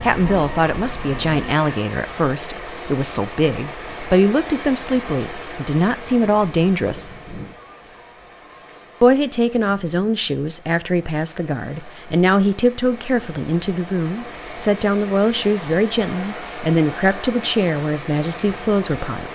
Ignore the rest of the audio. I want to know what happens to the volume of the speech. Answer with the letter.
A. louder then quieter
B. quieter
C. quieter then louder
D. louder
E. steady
E.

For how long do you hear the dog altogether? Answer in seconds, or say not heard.
not heard.